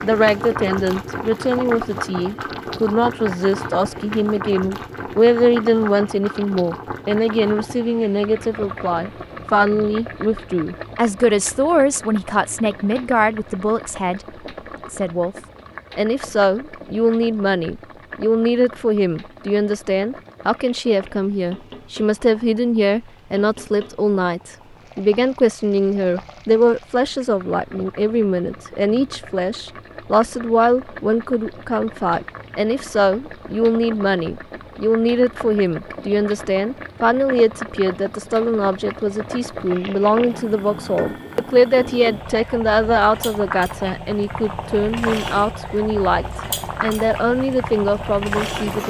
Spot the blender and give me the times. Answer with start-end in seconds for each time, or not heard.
not heard.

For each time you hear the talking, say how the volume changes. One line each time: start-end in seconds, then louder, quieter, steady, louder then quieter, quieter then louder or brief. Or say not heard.
0.0-14.2 steady
14.9-15.3 brief
15.9-48.8 steady.